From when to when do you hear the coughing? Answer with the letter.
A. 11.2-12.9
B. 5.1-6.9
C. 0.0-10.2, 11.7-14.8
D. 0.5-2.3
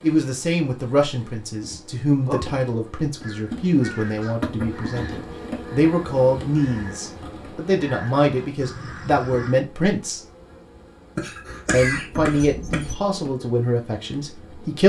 A.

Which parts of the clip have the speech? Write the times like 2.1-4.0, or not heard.
0.0-10.2, 11.7-14.8.